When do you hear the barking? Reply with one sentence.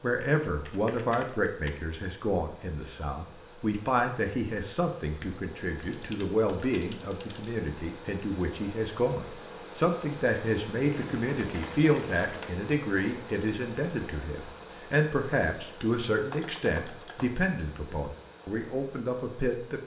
The barking can't be heard in this clip.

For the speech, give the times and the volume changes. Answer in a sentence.
The speech can be heard from 0.0 to 19.8 s, at a steady volume.